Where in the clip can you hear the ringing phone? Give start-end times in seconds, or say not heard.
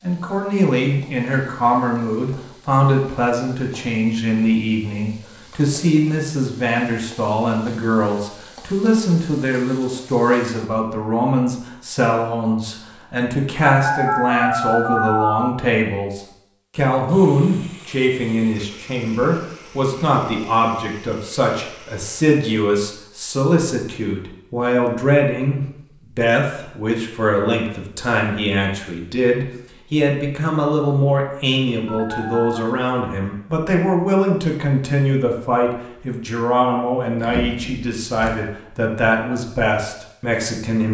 13.6-15.6, 31.9-32.6.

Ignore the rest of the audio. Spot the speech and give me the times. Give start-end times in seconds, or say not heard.
0.0-40.8.